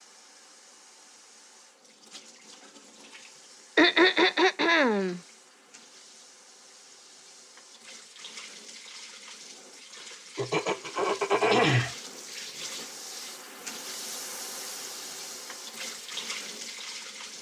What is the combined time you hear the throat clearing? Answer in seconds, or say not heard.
3 s.